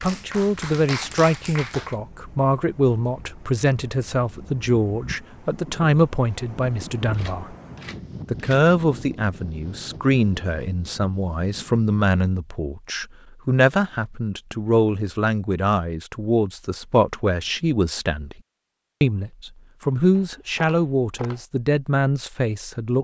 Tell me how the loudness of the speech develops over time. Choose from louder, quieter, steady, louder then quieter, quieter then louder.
steady.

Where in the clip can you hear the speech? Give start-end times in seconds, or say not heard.
0.0-7.5, 8.3-18.4, 19.0-22.9.